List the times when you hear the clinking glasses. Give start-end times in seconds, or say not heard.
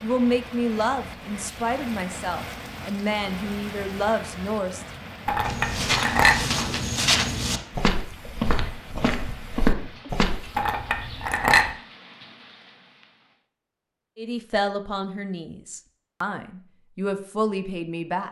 5.2-6.4, 10.6-11.7.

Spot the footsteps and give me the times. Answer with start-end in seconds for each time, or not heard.
5.5-10.7.